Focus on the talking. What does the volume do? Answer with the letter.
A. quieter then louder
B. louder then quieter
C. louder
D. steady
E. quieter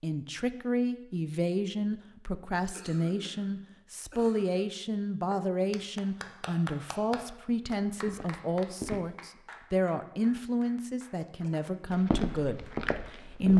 D.